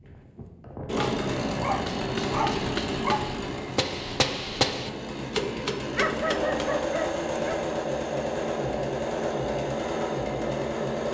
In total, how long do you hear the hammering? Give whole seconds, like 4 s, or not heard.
6 s.